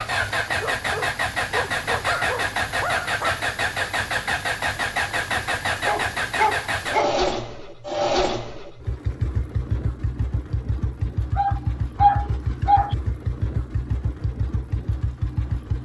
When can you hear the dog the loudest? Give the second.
12 s.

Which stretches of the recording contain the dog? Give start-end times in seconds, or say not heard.
0.5-3.5, 5.8-7.2, 11.3-12.9.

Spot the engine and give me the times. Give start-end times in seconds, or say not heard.
0.0-15.8.